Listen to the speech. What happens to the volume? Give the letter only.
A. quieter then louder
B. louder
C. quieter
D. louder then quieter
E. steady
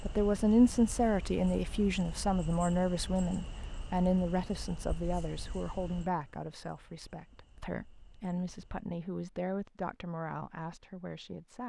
C.